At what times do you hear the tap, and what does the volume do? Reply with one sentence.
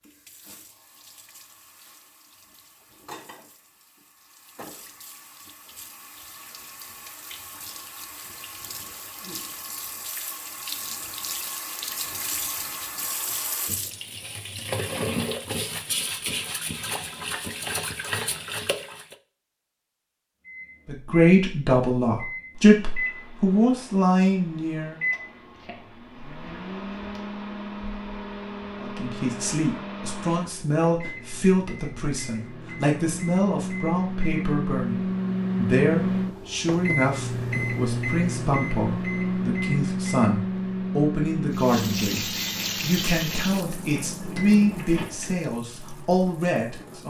You can hear the tap from 0.0 to 19.1 s, getting louder; and from 41.5 to 47.0 s, getting quieter.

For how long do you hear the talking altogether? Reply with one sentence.
The talking can be heard for 22 seconds in total.